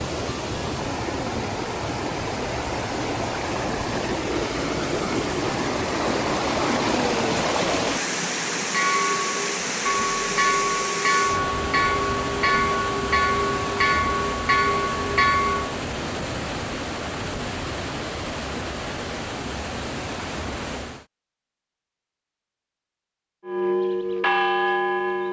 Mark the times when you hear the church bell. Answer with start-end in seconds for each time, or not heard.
8.7-15.8, 23.4-25.2.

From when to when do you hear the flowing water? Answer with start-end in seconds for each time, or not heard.
0.0-21.1.